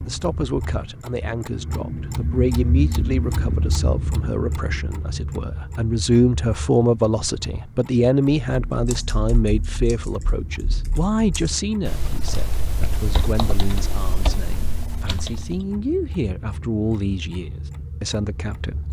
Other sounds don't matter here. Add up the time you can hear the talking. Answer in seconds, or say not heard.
19 s.